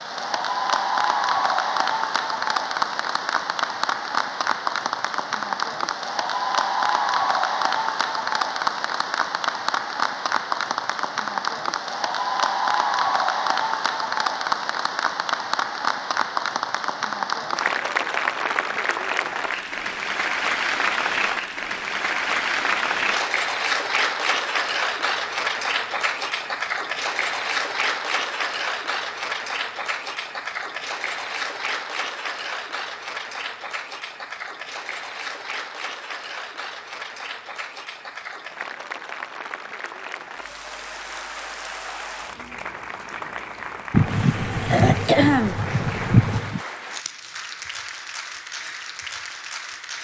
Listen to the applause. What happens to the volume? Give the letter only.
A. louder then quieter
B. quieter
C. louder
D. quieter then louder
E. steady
B.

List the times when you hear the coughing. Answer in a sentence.
The coughing can be heard from 43.9 to 46.6 s.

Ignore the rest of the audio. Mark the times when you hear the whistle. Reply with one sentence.
You can't hear the whistle here.